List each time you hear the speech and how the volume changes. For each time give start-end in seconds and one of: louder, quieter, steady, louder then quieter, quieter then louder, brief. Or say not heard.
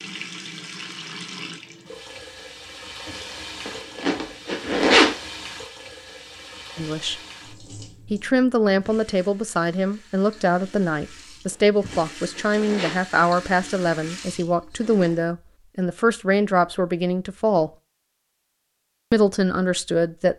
6.8-7.2 brief
8.1-17.7 steady
19.1-20.3 brief.